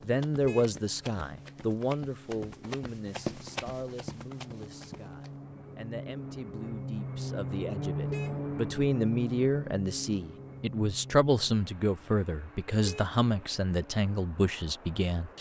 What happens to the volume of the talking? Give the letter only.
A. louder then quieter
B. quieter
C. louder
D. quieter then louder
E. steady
D.